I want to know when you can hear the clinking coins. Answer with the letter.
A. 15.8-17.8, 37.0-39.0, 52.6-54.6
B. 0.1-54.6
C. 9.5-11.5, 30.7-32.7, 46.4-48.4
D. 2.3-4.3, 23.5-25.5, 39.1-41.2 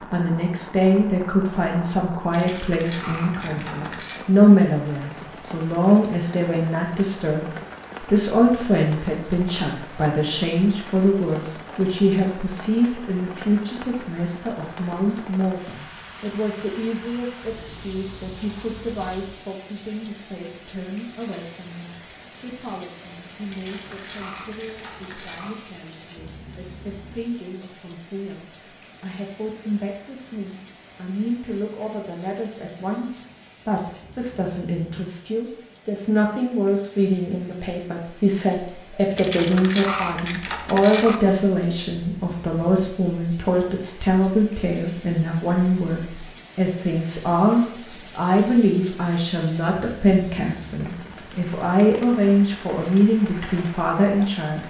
D.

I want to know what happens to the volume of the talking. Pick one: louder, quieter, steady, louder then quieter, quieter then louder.
quieter then louder.